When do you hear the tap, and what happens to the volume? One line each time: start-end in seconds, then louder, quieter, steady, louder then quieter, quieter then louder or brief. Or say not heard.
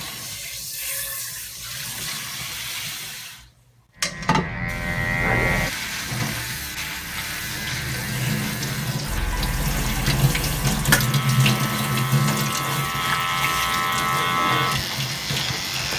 0.0-15.9 louder then quieter.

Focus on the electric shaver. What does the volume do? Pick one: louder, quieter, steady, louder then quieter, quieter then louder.
quieter then louder.